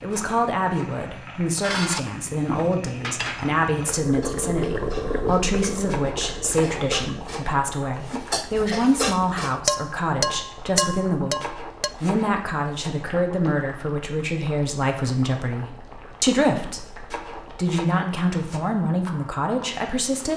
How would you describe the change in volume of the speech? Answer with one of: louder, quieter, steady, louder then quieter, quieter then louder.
steady.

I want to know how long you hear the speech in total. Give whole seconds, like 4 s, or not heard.
20 s.